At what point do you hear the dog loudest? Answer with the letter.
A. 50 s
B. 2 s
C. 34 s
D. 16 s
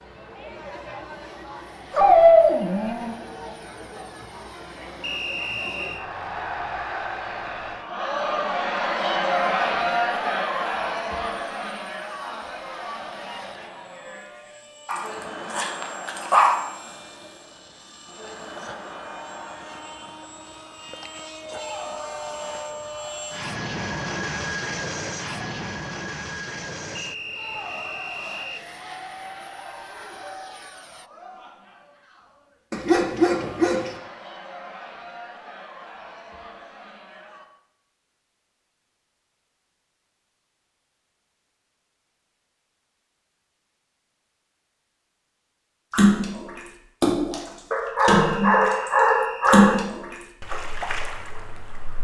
B.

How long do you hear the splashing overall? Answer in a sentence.
The splashing can be heard for 6 seconds in total.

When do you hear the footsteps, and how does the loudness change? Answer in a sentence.
The footsteps can't be heard in this clip.